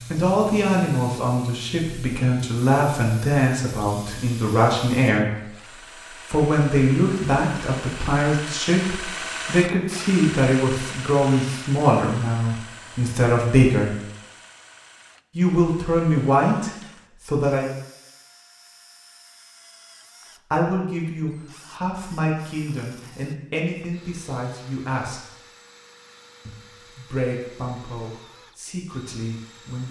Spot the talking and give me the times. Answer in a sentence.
You can hear the talking from 0.1 to 14.0 s, from 15.3 to 17.6 s, from 20.5 to 25.2 s and from 26.4 to 29.8 s.